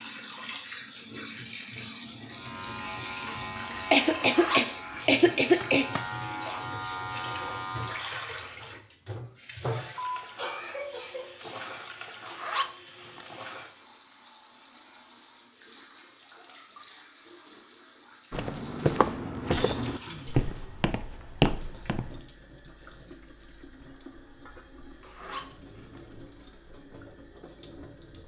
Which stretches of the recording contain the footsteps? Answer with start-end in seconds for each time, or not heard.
18.3-22.2.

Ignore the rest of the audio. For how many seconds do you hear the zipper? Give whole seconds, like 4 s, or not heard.
4 s.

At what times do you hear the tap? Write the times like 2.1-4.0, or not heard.
0.0-28.2.